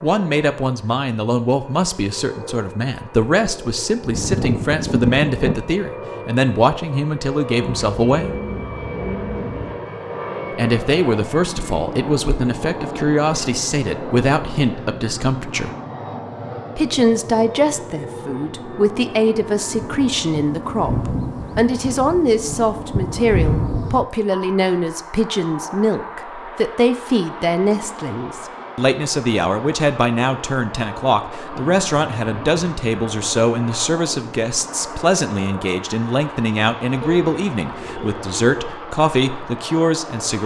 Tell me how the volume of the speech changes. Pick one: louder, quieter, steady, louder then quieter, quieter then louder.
steady.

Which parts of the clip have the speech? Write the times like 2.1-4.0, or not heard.
0.0-8.3, 10.5-15.7, 16.8-40.4.